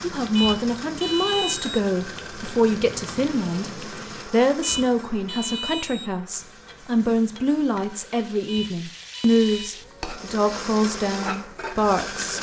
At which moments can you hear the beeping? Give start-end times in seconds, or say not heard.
0.3-1.8, 4.6-6.1, 8.4-9.8.